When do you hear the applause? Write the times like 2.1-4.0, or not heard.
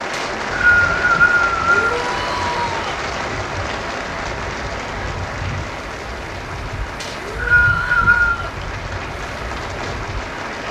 0.0-10.6.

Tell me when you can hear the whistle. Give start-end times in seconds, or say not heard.
0.1-1.9, 7.0-8.4.